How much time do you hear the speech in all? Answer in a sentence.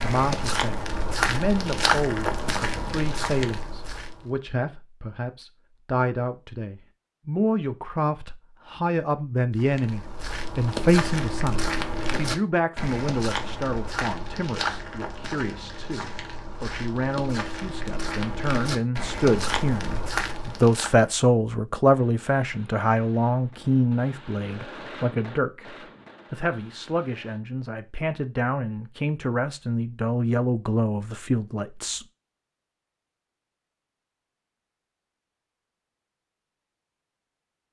The speech can be heard for 32 seconds in total.